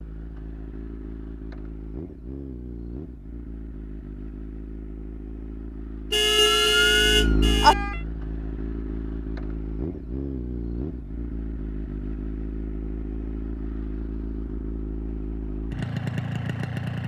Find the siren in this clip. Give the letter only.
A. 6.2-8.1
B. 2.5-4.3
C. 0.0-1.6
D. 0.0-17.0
A.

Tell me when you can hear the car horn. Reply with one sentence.
You can hear the car horn from 6.1 to 7.8 s.